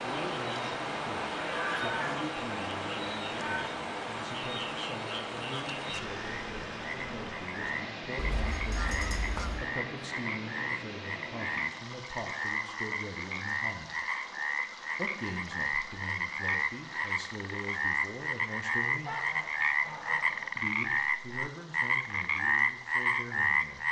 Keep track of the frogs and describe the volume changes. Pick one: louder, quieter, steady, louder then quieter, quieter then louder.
louder.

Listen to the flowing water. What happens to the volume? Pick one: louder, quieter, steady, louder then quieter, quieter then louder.
quieter.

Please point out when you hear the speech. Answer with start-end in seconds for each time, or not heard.
0.0-14.0, 14.9-19.1, 20.6-23.8.